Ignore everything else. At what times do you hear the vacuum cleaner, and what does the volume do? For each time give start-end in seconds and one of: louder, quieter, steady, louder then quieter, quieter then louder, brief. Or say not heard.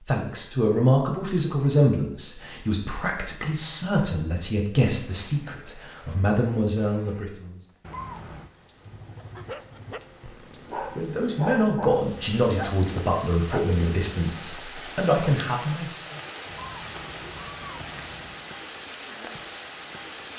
not heard.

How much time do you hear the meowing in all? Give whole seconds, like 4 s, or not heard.
3 s.